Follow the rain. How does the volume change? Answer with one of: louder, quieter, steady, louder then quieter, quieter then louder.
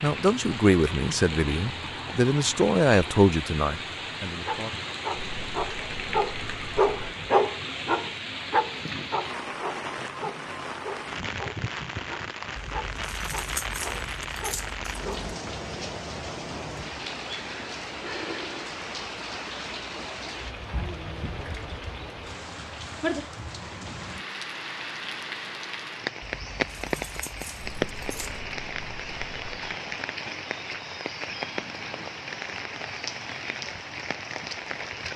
steady.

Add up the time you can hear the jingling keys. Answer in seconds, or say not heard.
5 s.